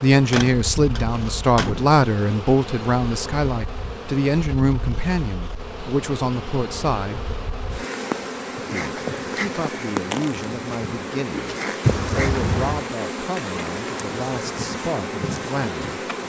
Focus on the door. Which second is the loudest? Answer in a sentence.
The volume of the door peaks at 12 seconds.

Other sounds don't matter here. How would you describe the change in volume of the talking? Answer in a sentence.
The loudness of the talking goes down.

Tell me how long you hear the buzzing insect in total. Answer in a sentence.
You can hear the buzzing insect for 16 seconds altogether.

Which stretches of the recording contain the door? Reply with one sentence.
You can hear the door from 0.3 to 1.9 s and from 11.8 to 12.8 s.